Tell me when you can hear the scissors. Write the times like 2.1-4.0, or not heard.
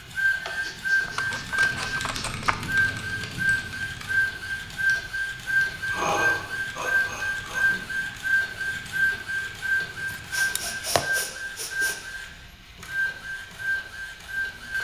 1.0-2.5, 10.1-11.1.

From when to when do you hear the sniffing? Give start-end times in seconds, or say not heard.
0.4-2.5, 5.5-8.1, 10.3-11.9.